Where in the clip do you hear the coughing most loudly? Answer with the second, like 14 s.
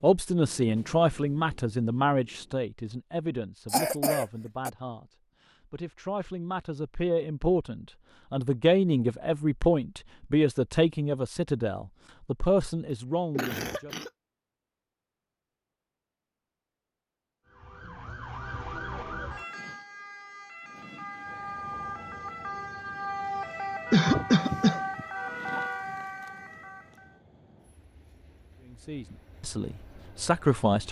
24 s.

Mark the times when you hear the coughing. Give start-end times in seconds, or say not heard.
3.7-4.7, 13.3-14.1, 23.9-25.8.